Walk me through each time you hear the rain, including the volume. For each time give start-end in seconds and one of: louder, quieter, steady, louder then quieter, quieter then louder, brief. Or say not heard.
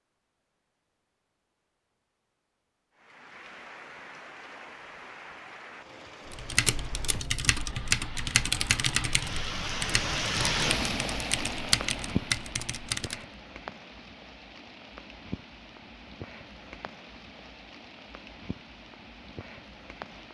3.0-20.2 louder then quieter.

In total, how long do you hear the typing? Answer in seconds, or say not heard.
7 s.